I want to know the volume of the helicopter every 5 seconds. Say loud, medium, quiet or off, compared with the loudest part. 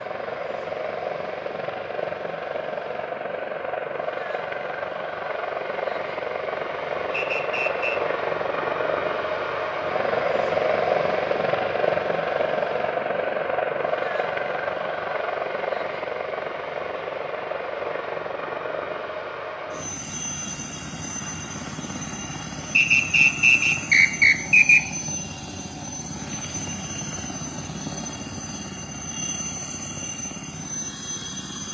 medium, loud, loud, medium, medium, medium, medium.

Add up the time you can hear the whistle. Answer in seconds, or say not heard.
3 s.